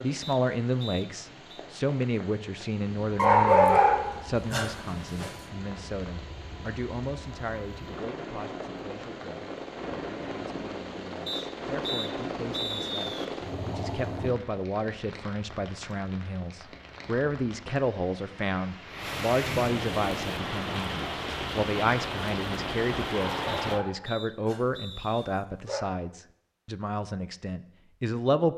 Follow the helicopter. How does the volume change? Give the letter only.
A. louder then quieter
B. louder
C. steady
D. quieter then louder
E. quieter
B.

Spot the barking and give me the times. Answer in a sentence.
You can hear the barking from 3.1 to 5.3 s and from 23.1 to 25.9 s.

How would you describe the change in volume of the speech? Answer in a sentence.
The loudness of the speech goes down, then up.